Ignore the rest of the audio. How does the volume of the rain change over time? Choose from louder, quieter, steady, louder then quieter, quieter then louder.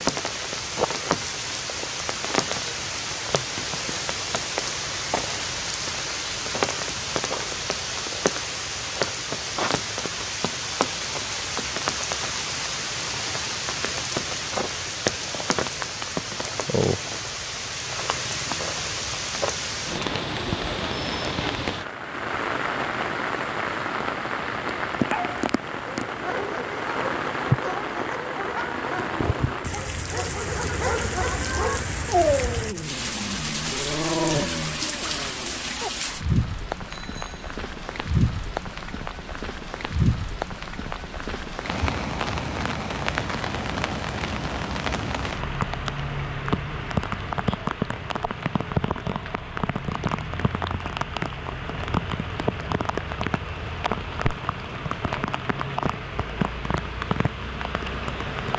steady.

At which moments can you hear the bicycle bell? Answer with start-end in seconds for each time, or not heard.
36.9-37.5.